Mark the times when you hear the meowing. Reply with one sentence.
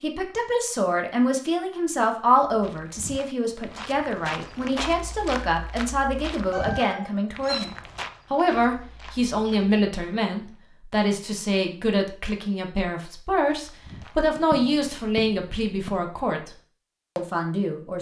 You can hear the meowing from 6.5 to 7.7 s.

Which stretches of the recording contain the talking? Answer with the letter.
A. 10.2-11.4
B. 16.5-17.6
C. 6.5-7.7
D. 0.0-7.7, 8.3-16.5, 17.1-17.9
D.